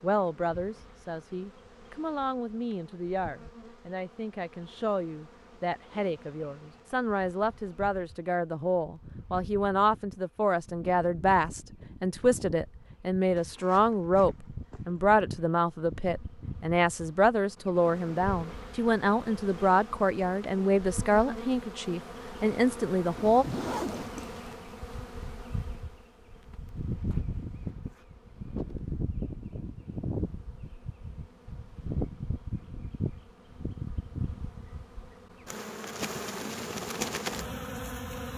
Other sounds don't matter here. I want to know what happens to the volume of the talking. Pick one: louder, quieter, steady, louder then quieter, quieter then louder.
louder.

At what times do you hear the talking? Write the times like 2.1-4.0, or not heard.
0.0-23.4.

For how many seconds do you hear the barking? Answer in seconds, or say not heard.
not heard.